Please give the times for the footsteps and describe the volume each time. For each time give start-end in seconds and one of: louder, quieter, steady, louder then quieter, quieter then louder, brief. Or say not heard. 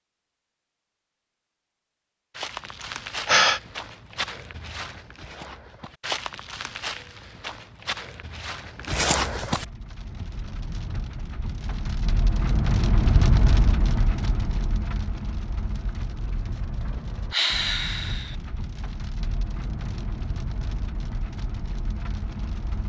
2.4-9.7 louder.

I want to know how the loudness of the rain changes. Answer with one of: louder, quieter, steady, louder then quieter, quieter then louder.
louder then quieter.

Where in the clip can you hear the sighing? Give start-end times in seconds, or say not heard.
2.9-3.6, 17.3-18.4.